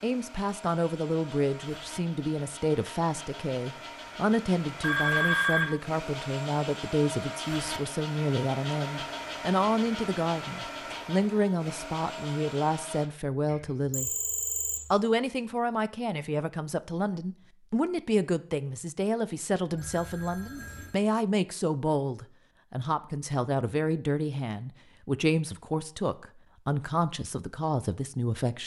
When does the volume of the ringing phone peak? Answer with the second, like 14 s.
5 s.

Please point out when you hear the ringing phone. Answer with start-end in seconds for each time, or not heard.
4.8-5.7, 13.5-14.8, 19.8-20.9.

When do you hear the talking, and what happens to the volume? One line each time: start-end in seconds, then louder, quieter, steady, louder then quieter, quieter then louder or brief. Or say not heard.
0.0-14.1 steady
14.9-28.6 steady.